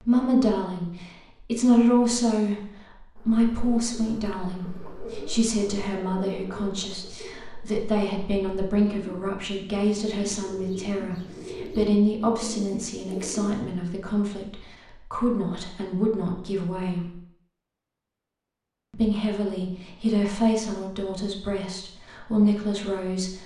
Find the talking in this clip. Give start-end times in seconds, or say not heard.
0.0-17.1, 18.9-23.4.